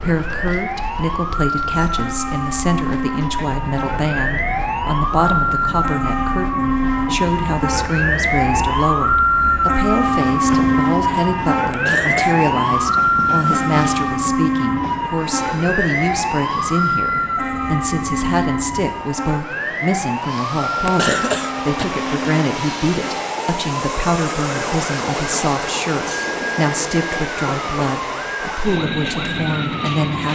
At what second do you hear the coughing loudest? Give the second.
21 s.